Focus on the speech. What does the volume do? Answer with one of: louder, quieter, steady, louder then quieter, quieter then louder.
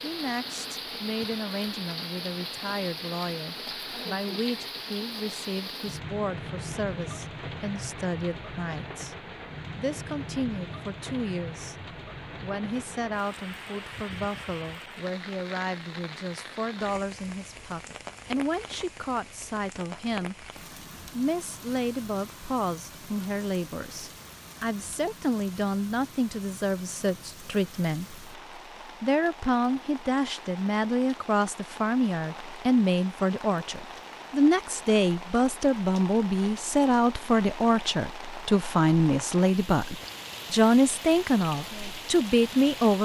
louder.